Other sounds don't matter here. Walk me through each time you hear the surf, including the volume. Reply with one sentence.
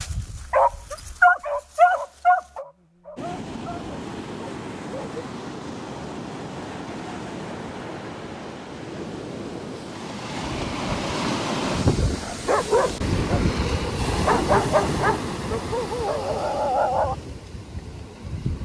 The surf can be heard from 3.1 to 18.6 s, getting louder then quieter.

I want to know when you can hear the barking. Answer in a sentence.
The barking can be heard from 0.0 to 5.0 s and from 12.0 to 17.1 s.